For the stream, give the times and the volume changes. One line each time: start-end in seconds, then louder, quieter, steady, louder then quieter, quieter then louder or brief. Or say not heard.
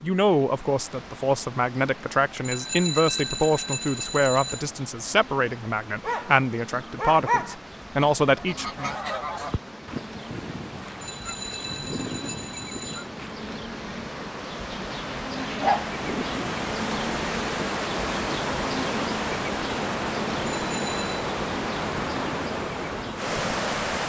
0.2-24.0 louder.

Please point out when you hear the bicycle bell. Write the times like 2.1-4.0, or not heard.
2.4-4.7, 11.0-13.1, 20.5-21.1.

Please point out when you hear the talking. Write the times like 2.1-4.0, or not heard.
0.0-8.9.